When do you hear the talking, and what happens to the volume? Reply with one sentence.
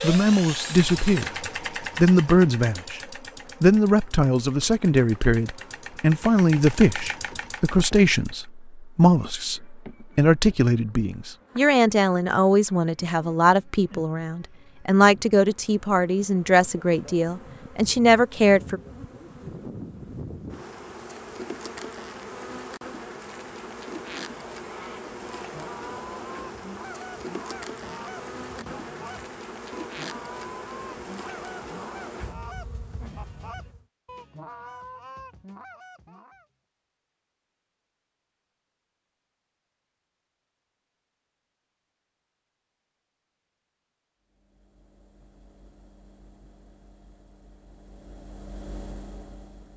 You can hear the talking briefly from 0.0 to 1.3 s; briefly from 1.9 to 3.0 s; and from 3.6 to 18.8 s, at a steady volume.